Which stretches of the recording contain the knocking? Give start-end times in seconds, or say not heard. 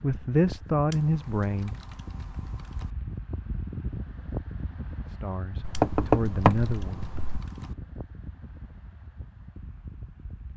5.6-7.4.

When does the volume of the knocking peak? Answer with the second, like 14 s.
6 s.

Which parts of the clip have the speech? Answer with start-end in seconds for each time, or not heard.
0.0-1.8, 5.1-7.1.